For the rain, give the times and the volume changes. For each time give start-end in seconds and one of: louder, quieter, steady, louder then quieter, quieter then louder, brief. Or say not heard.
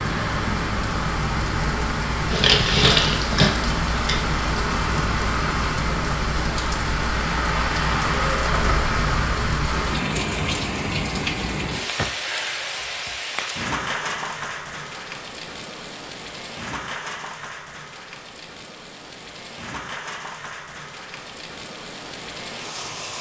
0.0-23.1 quieter.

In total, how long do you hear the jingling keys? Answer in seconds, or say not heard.
2 s.